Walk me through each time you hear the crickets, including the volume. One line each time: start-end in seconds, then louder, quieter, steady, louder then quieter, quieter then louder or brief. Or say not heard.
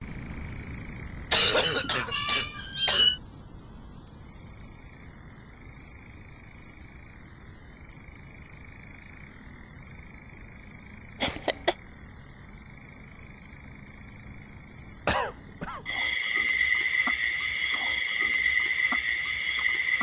0.0-19.9 louder.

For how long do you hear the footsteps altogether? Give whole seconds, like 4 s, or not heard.
not heard.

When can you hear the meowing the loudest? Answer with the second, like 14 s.
3 s.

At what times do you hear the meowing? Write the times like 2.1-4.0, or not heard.
1.6-3.2.